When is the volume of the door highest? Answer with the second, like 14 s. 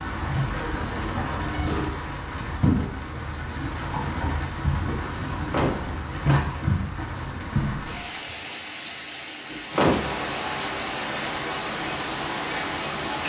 10 s.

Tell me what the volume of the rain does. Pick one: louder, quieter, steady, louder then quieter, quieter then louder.
steady.